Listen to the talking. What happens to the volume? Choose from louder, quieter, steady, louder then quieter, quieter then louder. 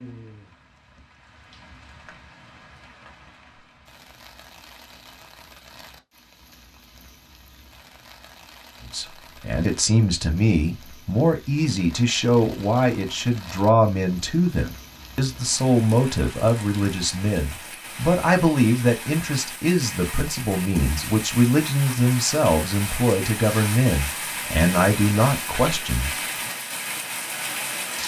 steady.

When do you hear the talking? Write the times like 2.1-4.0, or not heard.
8.9-26.1.